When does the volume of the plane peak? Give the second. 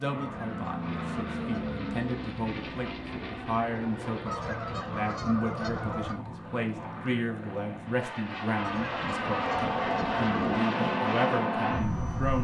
11 s.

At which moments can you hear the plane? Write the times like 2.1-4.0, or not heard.
0.0-12.3.